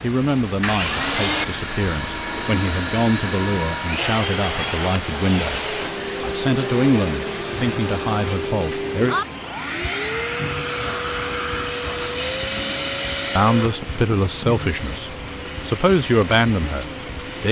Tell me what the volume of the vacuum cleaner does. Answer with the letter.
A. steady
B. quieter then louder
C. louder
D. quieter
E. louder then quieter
D.